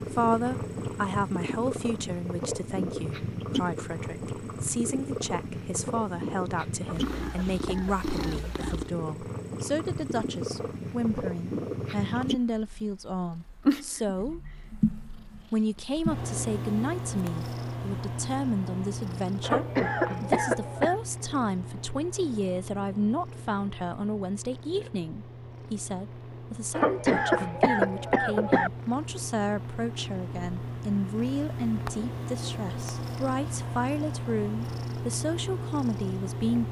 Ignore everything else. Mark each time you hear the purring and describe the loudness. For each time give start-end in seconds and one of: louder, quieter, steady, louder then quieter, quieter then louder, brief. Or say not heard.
0.0-36.6 quieter then louder.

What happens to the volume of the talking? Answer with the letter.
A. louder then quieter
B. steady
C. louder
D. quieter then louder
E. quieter
B.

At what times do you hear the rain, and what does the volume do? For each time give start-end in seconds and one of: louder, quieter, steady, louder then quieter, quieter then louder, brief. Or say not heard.
not heard.